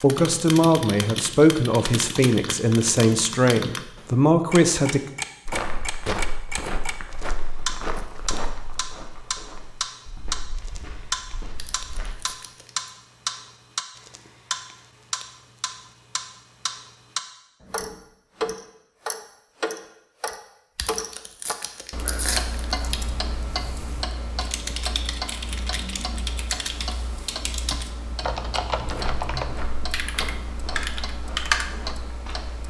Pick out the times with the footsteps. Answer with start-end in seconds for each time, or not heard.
5.5-12.2, 28.9-32.6.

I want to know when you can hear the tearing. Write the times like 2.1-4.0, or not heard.
11.6-12.9, 20.8-23.0.